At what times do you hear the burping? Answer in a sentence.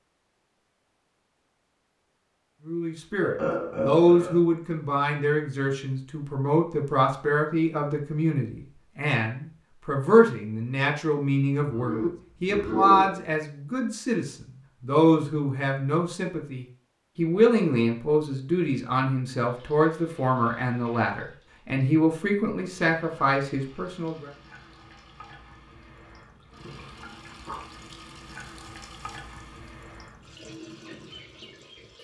You can hear the burping from 3.2 to 4.4 s, from 11.6 to 13.4 s and from 26.6 to 27.6 s.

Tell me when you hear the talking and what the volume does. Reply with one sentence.
The talking can be heard from 2.6 to 24.3 s, at a steady volume.